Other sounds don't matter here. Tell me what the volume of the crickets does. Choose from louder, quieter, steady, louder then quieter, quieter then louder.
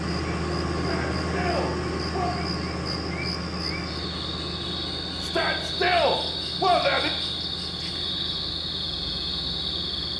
louder.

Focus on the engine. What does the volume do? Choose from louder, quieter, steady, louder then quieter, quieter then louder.
quieter.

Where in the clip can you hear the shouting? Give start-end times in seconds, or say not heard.
0.8-2.3, 5.2-7.1.